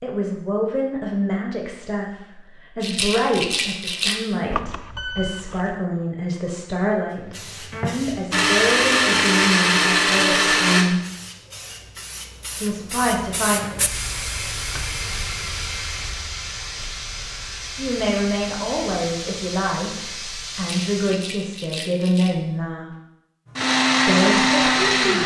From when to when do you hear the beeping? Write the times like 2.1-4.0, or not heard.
4.5-5.8.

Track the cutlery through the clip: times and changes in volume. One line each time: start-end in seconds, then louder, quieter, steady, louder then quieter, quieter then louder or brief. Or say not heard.
not heard.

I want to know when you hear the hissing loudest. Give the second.
14 s.